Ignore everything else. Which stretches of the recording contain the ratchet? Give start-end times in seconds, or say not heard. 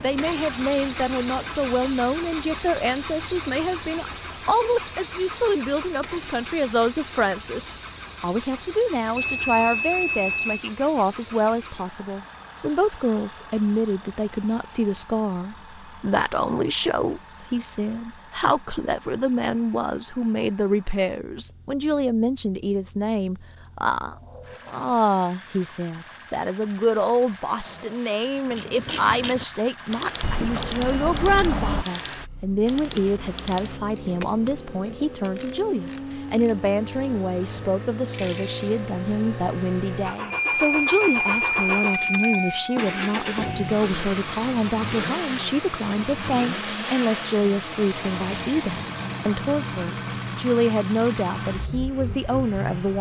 28.4-38.9.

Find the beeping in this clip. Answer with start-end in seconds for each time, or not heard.
9.2-10.7, 30.2-31.9, 40.3-42.6.